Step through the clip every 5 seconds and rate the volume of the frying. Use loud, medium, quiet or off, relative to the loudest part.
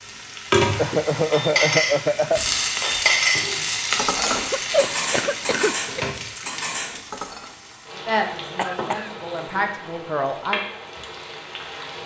loud, medium, medium.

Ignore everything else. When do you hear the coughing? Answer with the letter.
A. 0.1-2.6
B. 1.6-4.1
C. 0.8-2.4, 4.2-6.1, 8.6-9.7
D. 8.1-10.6
C.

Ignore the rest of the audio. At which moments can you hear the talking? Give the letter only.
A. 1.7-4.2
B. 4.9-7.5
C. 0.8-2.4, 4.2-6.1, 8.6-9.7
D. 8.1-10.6
D.